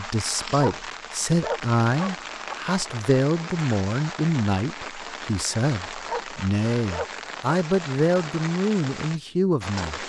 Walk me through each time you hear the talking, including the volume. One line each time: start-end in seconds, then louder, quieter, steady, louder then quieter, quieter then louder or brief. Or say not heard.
0.0-10.0 steady.